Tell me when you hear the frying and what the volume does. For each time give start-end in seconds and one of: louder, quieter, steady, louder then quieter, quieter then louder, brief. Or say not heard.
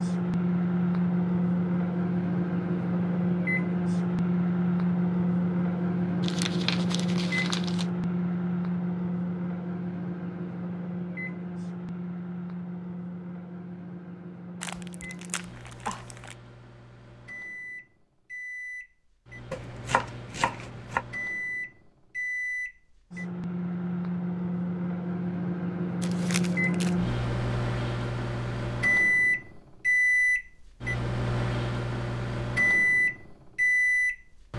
not heard.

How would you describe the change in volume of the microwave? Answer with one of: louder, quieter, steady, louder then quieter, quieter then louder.
quieter then louder.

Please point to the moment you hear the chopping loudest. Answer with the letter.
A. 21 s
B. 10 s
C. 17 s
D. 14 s
A.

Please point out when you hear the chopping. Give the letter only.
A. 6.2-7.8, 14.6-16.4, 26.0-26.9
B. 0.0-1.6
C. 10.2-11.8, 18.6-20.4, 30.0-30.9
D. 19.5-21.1
D.